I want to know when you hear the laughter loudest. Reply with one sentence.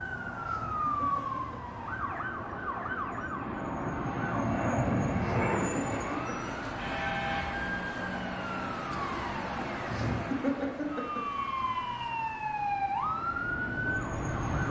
The loudest moment of the laughter is at 10 seconds.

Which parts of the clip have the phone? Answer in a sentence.
You can't hear the phone here.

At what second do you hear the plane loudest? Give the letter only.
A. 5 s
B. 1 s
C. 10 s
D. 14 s
A.